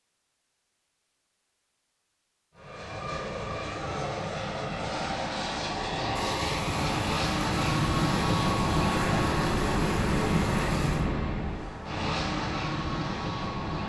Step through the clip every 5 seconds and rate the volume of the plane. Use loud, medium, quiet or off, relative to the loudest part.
medium, loud, loud.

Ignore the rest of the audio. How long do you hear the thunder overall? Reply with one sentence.
The thunder can be heard for 5 seconds in total.